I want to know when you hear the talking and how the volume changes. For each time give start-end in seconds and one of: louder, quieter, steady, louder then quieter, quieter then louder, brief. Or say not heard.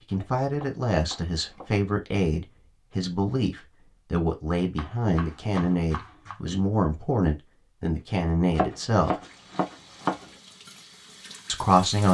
0.0-9.2 steady
11.4-12.0 brief.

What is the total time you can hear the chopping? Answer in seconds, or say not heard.
5 s.